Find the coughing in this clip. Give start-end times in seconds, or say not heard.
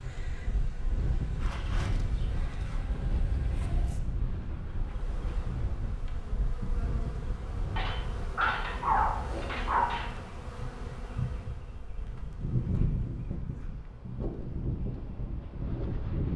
not heard.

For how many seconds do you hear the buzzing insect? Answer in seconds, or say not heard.
16 s.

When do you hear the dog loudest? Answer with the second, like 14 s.
9 s.